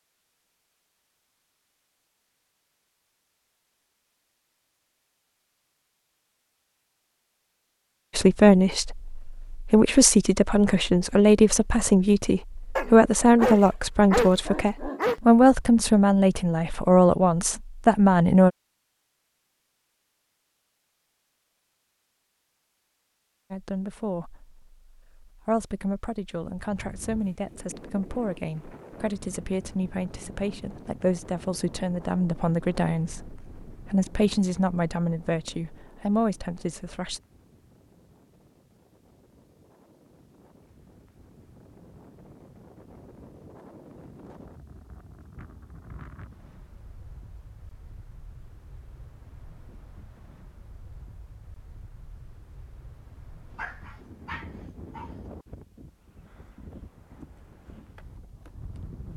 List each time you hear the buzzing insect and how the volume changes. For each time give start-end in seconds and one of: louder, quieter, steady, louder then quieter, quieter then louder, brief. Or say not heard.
not heard.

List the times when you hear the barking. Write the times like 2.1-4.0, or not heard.
12.8-15.2, 53.5-55.1.